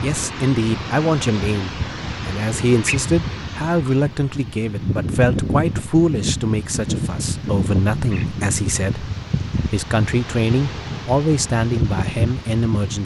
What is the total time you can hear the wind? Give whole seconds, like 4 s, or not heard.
13 s.